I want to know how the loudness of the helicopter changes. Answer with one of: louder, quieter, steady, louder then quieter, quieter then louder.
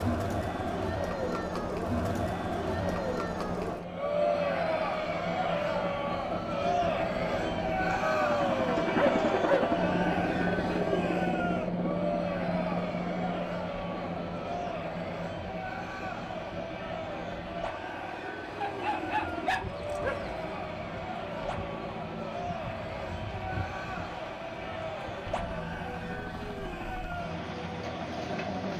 louder then quieter.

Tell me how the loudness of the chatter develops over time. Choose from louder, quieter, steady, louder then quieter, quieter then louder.
quieter.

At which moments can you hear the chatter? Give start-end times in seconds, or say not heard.
0.0-28.7.